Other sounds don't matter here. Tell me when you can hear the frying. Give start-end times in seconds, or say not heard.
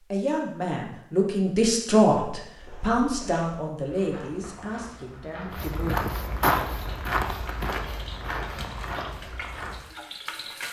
6.7-10.6.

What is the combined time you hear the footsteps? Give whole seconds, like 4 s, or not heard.
7 s.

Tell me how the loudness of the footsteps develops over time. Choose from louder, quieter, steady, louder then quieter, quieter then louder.
louder then quieter.